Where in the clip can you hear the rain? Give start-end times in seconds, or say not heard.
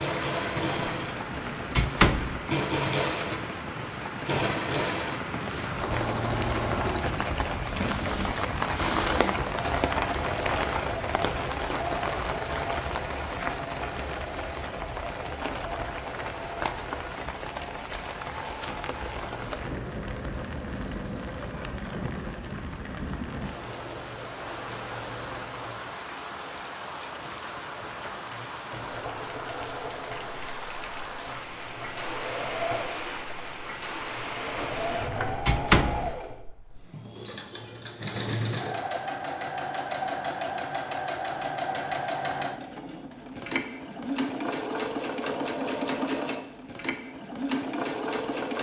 0.0-35.4.